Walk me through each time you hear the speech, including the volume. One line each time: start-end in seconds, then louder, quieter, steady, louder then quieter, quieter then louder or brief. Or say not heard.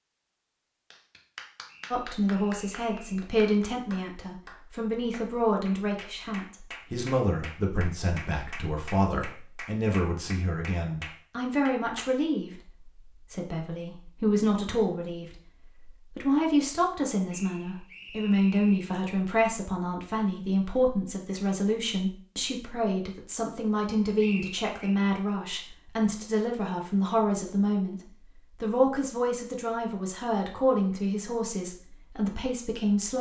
1.9-33.1 steady.